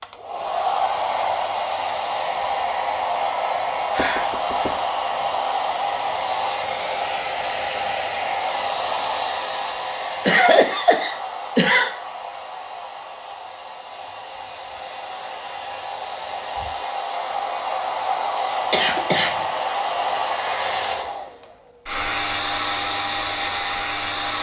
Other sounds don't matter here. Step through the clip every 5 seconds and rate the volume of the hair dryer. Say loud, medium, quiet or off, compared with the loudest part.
loud, loud, medium, loud, loud.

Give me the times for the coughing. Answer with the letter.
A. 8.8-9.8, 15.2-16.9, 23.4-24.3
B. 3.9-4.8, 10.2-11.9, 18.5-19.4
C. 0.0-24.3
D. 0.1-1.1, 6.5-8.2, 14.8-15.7
B.